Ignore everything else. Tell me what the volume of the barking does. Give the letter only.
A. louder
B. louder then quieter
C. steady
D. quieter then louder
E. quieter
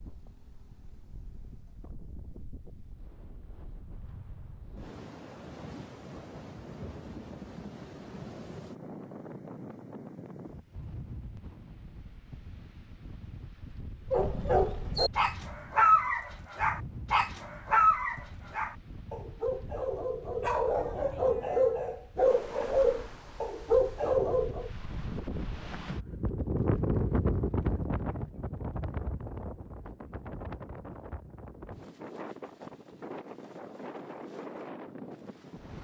D.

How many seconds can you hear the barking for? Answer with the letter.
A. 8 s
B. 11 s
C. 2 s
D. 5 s
B.